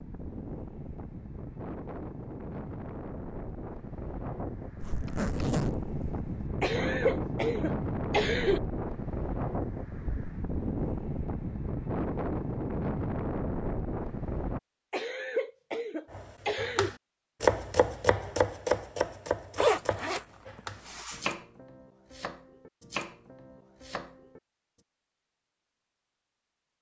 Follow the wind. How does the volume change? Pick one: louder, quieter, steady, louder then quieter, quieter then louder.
louder.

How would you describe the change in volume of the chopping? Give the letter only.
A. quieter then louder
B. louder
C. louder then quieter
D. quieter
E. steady
D.